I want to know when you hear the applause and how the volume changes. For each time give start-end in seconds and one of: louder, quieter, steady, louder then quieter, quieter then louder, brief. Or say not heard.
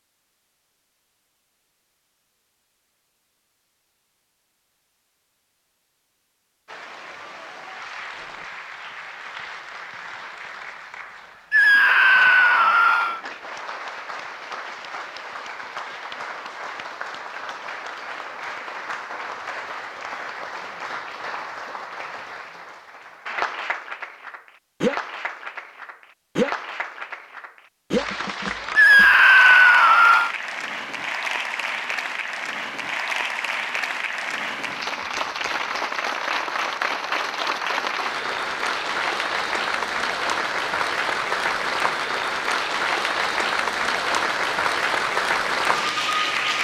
6.7-46.5 louder.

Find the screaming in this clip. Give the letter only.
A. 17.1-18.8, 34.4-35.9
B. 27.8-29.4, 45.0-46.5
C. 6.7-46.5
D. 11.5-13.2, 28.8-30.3
D.